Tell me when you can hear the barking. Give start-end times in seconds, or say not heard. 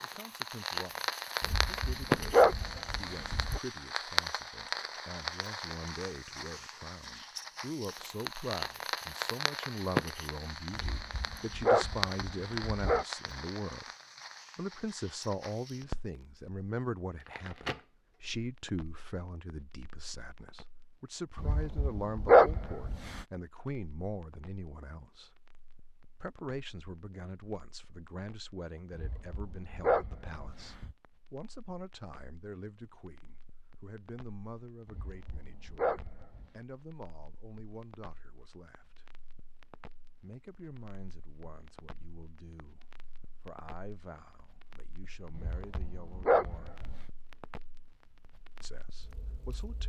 1.4-3.6, 10.8-13.1, 21.4-23.2, 28.9-30.9, 34.9-36.5, 45.4-47.0.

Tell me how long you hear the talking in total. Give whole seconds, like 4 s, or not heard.
45 s.